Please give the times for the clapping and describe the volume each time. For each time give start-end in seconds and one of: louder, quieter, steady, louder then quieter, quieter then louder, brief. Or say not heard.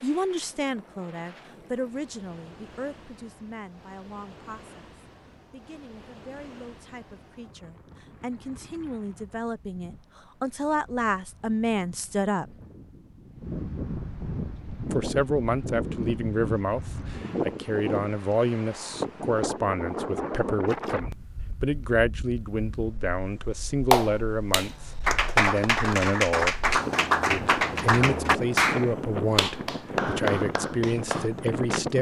23.9-31.8 quieter.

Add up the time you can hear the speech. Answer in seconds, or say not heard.
29 s.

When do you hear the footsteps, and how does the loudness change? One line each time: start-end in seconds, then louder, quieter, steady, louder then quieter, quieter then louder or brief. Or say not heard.
not heard.